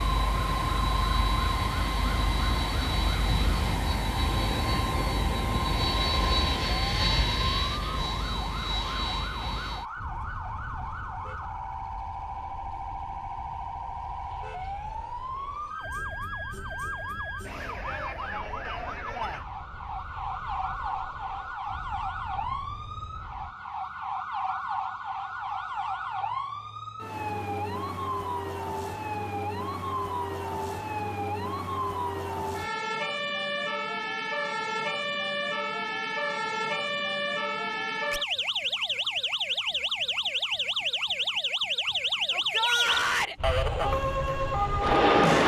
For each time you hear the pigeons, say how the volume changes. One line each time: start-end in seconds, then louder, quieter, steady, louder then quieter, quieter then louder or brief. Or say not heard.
not heard.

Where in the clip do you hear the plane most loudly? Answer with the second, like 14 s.
45 s.